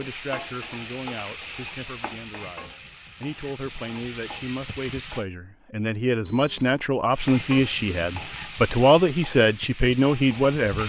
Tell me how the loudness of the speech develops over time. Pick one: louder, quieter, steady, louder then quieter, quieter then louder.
louder.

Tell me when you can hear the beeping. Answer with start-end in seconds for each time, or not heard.
6.2-6.8.